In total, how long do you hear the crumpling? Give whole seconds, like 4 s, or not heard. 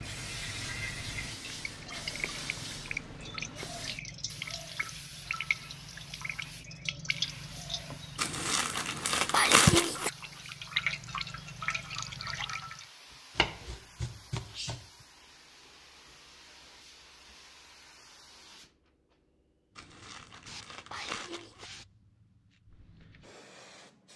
4 s.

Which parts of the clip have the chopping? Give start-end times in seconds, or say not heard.
13.3-15.1.